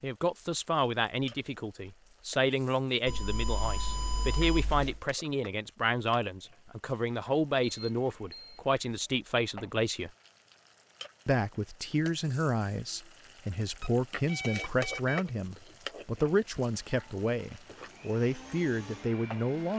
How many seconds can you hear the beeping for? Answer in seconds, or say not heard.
4 s.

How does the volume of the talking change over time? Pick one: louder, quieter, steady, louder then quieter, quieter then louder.
steady.